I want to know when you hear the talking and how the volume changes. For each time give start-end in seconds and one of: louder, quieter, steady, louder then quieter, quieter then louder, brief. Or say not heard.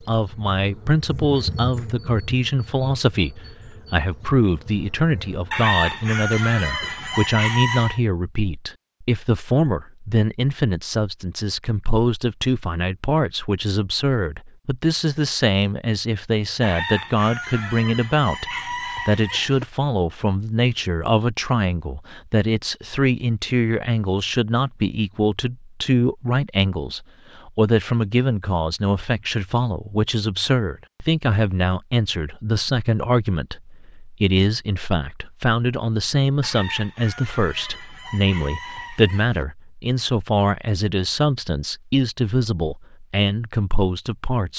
0.0-44.5 steady.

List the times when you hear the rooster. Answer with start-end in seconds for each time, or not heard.
5.5-8.0, 16.6-19.6, 36.4-39.5.